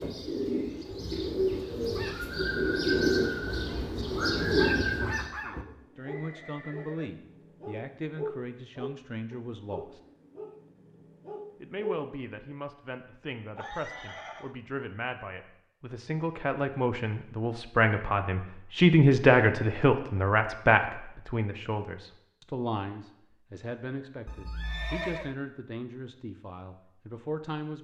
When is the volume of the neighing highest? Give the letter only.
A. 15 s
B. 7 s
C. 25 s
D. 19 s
C.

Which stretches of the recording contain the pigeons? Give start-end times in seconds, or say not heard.
0.0-5.3.